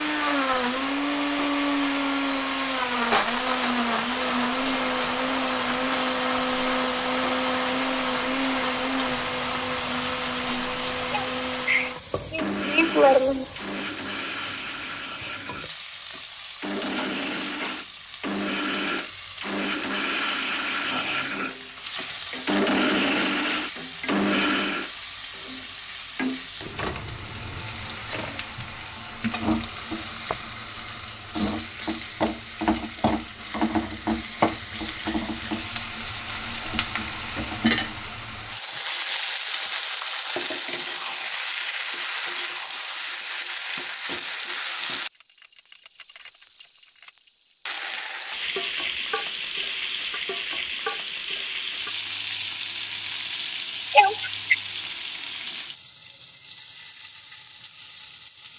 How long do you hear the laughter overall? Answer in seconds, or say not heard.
3 s.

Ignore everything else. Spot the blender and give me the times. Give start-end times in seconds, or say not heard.
0.0-24.9.